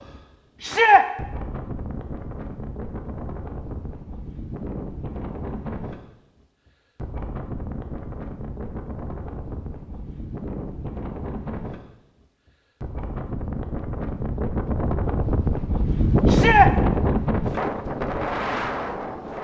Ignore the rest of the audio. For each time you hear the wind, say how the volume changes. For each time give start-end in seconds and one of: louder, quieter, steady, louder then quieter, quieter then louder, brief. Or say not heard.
0.0-19.3 louder.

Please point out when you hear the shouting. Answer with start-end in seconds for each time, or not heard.
0.6-1.1, 16.2-16.7.